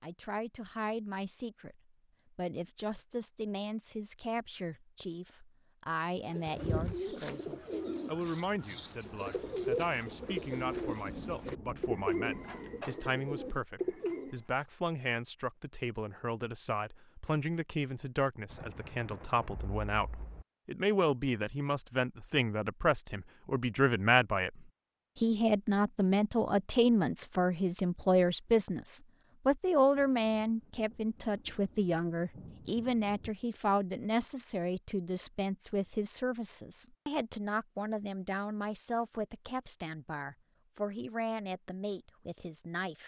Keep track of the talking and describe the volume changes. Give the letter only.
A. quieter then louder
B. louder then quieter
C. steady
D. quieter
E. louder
B.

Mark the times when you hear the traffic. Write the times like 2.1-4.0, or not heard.
not heard.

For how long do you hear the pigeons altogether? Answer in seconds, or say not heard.
8 s.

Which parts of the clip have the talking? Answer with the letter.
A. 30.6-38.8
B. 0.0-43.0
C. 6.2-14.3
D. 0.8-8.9
B.